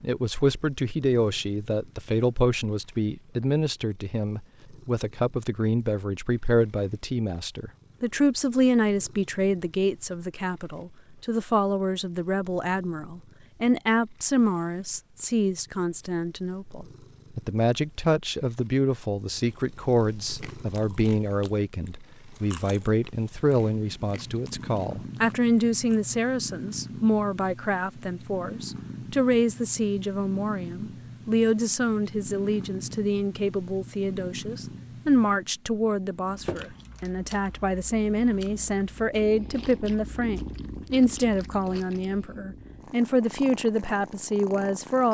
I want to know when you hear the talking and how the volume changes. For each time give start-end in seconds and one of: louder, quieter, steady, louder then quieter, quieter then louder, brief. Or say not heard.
0.0-45.1 steady.